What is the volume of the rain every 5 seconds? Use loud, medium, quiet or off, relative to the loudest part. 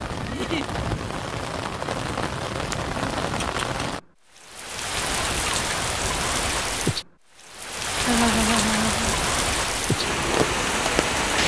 medium, loud, loud.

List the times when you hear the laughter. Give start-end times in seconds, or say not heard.
0.2-0.7, 8.1-9.2.